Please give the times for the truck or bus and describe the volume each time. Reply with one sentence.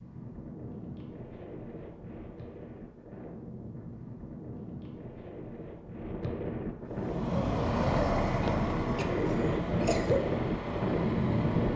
The truck or bus can be heard from 6.8 to 11.7 s, getting quieter.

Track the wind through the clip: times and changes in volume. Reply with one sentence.
The wind can be heard from 0.0 to 11.7 s, getting louder.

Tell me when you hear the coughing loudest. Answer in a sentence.
The volume of the coughing peaks at 10 seconds.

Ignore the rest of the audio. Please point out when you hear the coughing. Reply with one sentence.
The coughing can be heard from 8.4 to 10.2 s.